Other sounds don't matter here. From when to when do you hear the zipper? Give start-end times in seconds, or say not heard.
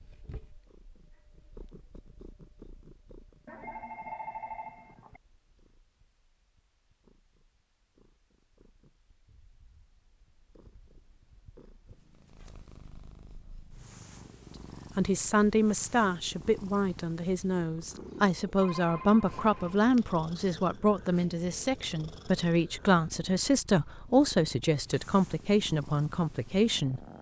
not heard.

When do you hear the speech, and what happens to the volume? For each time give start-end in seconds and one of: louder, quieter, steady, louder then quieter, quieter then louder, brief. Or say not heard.
14.9-27.1 steady.